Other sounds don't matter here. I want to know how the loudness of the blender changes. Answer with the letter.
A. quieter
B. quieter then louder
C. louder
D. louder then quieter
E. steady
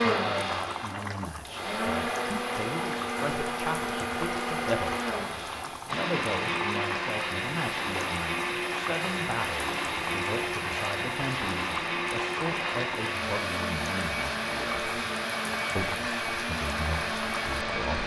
E.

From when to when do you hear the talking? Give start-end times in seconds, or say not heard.
0.0-5.1, 5.8-14.9, 15.8-18.0.